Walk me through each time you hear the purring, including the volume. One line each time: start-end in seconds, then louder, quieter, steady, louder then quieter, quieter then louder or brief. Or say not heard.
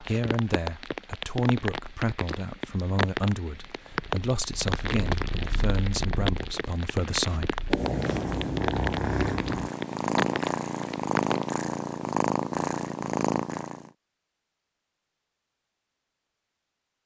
3.9-13.9 louder.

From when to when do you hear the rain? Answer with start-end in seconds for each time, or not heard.
0.0-11.5.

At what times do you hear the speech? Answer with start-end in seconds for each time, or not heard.
0.0-7.7.